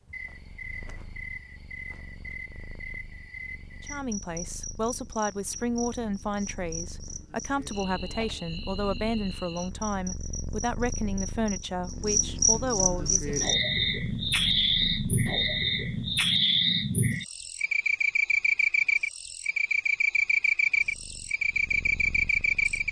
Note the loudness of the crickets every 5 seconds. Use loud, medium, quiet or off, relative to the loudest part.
quiet, quiet, loud, loud, loud.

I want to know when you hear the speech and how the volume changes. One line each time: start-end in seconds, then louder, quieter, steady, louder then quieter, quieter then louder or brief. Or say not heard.
3.8-13.3 steady.